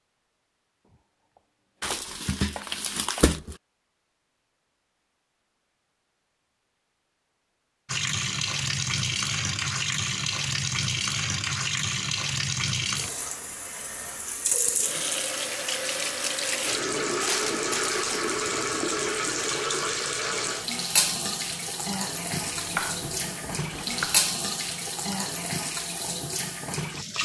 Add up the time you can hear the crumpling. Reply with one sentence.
You can hear the crumpling for 3 seconds altogether.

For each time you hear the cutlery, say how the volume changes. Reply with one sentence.
You can't hear the cutlery here.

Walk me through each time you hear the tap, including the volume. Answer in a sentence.
The tap can be heard from 7.8 to 27.2 s, at a steady volume.